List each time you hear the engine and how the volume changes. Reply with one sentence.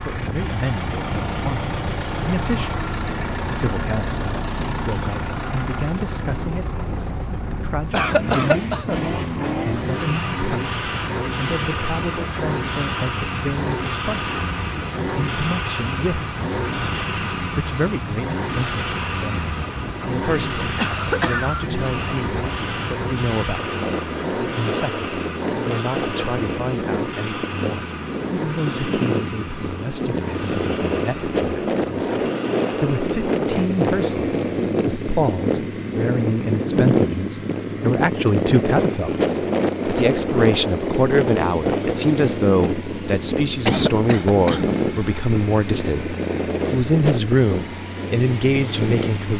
The engine can be heard from 0.0 to 49.3 s, getting quieter.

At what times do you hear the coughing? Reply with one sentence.
You can hear the coughing from 7.9 to 8.9 s, from 20.8 to 21.6 s and from 43.6 to 44.8 s.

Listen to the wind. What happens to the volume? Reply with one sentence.
The volume of the wind goes up.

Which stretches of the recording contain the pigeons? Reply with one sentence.
You can't hear the pigeons here.